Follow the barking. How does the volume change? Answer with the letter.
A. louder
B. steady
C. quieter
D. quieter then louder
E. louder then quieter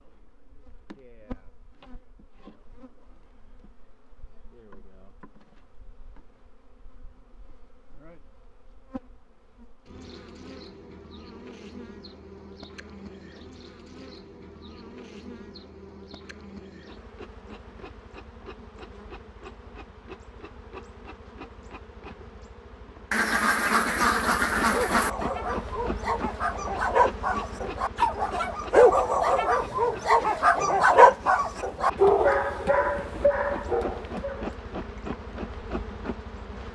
E.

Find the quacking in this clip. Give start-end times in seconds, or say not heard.
23.1-25.1.